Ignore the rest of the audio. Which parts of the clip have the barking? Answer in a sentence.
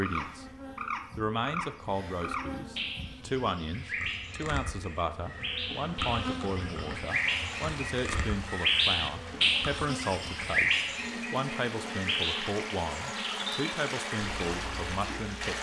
You can't hear the barking here.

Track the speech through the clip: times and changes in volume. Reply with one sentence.
You can hear the speech briefly from 0.0 to 0.5 s; and from 1.1 to 15.5 s, at a steady volume.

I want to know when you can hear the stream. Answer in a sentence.
The stream can be heard from 7.0 to 15.5 s.